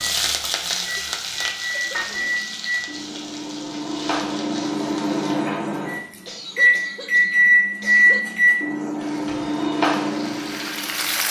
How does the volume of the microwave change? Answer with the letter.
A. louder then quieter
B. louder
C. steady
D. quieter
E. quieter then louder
A.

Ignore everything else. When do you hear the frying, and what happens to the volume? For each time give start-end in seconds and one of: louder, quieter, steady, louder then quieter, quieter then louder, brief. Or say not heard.
0.0-5.3 quieter
8.9-11.2 brief.